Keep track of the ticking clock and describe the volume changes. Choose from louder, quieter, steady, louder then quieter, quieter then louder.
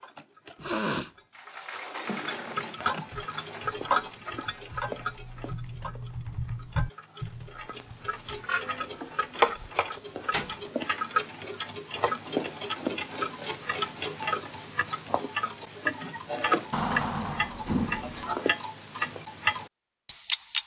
quieter then louder.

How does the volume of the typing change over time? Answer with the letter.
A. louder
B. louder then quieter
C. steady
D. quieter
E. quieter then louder
B.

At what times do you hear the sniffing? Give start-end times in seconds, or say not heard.
0.6-1.1.